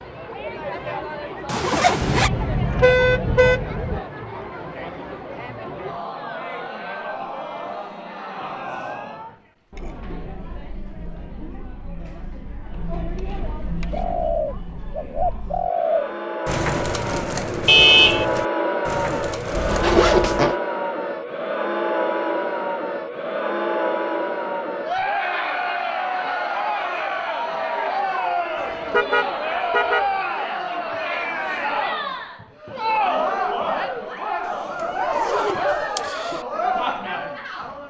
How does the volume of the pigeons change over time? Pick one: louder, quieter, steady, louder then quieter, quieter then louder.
quieter.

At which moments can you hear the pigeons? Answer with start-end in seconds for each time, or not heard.
13.9-20.0.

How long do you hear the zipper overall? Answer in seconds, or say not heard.
3 s.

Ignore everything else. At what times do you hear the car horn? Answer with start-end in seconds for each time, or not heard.
2.0-4.0, 17.6-18.2, 28.9-30.1.